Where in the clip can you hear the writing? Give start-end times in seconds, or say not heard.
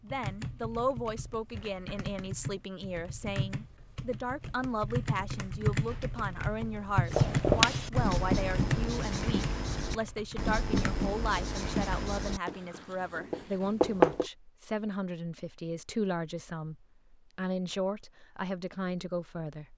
7.1-14.3.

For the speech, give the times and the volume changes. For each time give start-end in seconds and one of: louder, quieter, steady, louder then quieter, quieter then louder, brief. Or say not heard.
0.0-19.7 steady.